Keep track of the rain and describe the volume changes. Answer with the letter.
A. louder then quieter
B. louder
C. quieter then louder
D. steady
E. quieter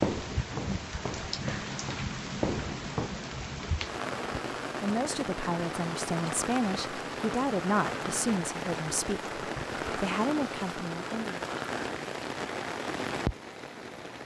D.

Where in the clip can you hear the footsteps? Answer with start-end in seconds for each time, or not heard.
0.0-3.1.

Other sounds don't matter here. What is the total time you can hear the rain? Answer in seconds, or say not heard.
14 s.